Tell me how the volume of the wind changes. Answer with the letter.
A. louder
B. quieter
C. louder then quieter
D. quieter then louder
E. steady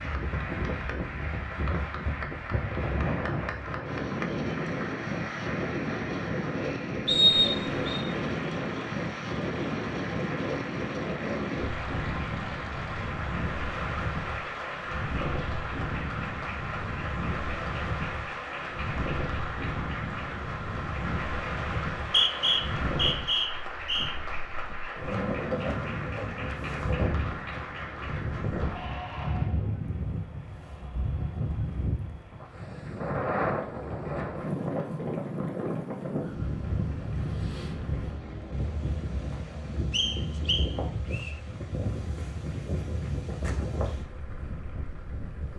E.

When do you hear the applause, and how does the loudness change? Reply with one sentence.
You can hear the applause from 0.0 to 45.5 s, getting quieter.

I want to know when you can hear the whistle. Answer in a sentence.
The whistle can be heard from 7.0 to 8.1 s, from 22.0 to 24.1 s and from 39.9 to 41.3 s.